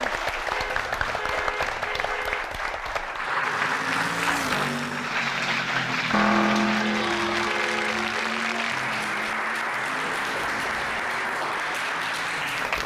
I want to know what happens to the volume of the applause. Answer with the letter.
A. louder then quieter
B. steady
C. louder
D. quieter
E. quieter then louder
B.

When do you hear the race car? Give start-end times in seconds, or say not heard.
3.4-12.8.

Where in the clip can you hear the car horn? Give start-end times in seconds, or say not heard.
0.5-2.4, 6.8-8.3.